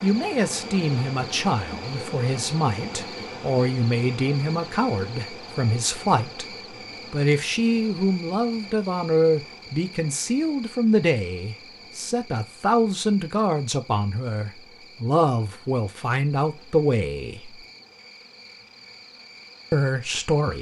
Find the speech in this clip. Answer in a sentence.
The speech can be heard from 0.0 to 6.5 s, from 7.1 to 17.6 s and from 19.7 to 20.5 s.